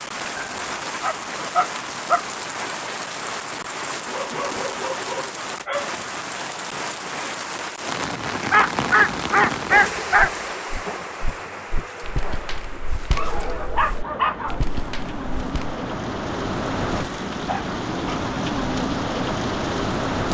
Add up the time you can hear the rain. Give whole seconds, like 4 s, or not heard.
20 s.